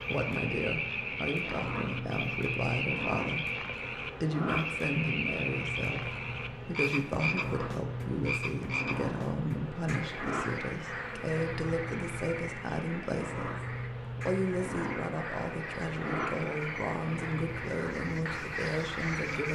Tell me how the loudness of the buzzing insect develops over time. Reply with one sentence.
The volume of the buzzing insect stays about the same.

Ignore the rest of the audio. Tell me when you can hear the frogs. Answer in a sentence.
The frogs can be heard from 0.0 to 19.5 s.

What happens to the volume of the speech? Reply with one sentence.
The volume of the speech stays about the same.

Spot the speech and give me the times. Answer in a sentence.
You can hear the speech from 0.1 to 19.5 s.